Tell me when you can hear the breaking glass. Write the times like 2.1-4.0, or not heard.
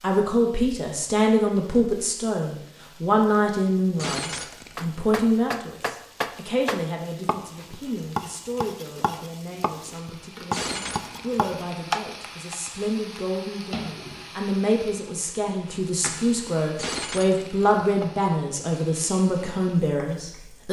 4.0-4.8, 10.5-11.3, 16.8-17.6.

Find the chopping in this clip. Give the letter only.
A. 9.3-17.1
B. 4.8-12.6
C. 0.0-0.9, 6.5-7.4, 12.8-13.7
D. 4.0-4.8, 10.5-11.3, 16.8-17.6
B.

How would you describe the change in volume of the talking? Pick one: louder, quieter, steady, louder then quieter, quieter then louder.
quieter then louder.